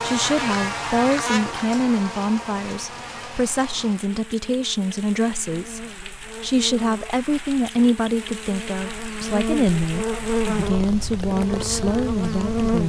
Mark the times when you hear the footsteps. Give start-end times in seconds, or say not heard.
not heard.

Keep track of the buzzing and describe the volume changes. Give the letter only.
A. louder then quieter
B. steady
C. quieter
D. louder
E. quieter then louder
E.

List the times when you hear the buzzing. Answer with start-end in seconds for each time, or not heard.
0.0-12.8.